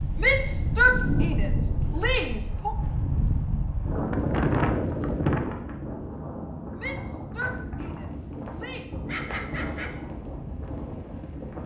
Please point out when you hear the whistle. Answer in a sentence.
You can't hear the whistle here.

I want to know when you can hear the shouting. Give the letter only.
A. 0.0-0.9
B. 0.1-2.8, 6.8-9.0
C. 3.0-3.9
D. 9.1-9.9
B.